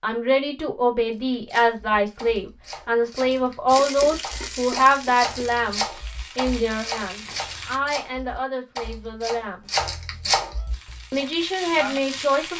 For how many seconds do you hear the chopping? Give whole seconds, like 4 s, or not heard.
10 s.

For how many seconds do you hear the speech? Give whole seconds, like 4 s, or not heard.
11 s.